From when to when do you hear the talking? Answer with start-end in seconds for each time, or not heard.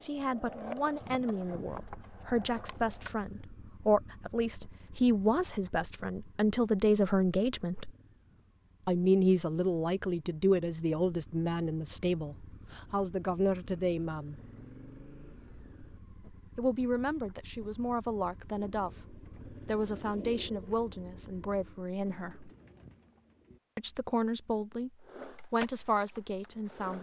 0.0-7.9, 8.8-14.3, 16.6-22.5, 23.8-26.9.